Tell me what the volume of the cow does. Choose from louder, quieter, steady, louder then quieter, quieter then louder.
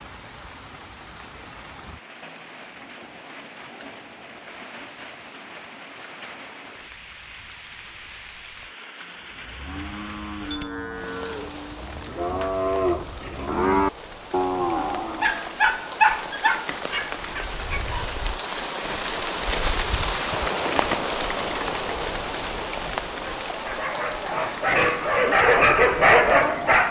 louder.